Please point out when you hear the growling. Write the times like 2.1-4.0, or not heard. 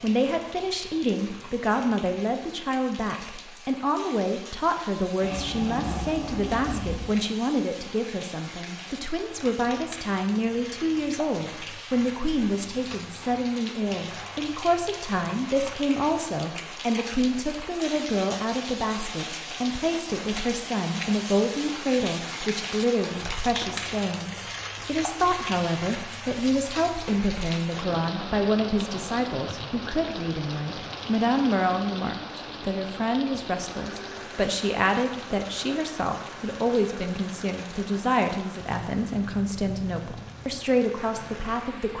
5.2-7.0.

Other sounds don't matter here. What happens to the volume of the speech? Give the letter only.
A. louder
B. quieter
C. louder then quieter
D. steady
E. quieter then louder
D.